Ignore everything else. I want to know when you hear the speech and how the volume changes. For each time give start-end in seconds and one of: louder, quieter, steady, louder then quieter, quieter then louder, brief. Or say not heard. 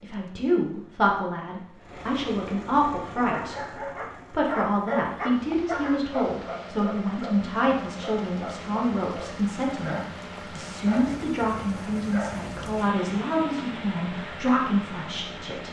0.0-15.6 steady.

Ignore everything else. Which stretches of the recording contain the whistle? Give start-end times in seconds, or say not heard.
not heard.